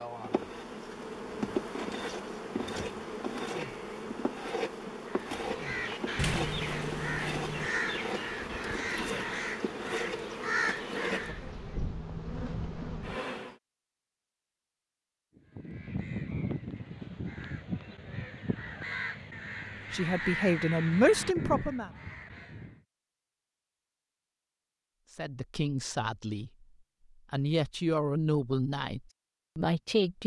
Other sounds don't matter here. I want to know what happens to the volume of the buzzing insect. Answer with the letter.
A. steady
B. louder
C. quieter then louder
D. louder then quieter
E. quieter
A.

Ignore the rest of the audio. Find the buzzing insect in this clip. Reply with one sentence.
You can hear the buzzing insect from 0.0 to 13.6 s.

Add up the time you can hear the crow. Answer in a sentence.
The crow can be heard for 14 seconds in total.